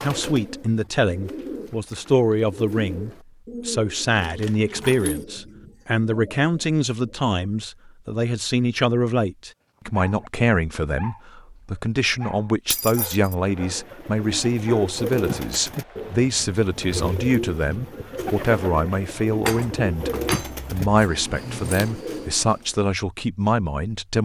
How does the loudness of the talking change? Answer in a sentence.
The volume of the talking stays about the same.